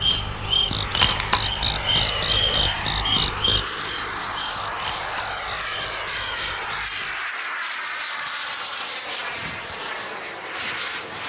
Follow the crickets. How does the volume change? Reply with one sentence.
The volume of the crickets goes down.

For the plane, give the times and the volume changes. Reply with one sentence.
You can hear the plane from 0.0 to 11.2 s, at a steady volume.